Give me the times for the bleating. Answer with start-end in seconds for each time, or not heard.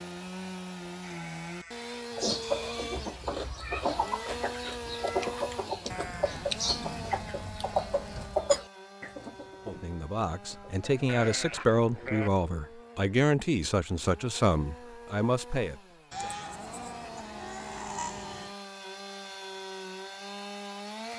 1.0-3.0, 5.9-8.4, 11.1-12.3, 16.1-18.6.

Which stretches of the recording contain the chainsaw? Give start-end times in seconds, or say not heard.
0.0-21.1.